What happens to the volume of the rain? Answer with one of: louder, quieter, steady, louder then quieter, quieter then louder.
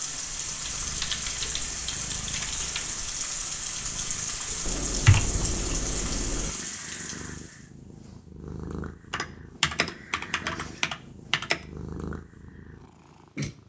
steady.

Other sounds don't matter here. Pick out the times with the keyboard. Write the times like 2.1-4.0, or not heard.
0.8-2.9, 4.7-6.5, 9.1-11.6.